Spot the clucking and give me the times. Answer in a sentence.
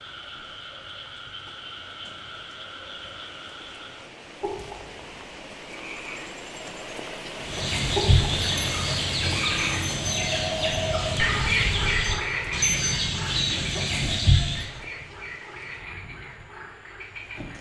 You can hear the clucking from 7.4 to 14.7 s.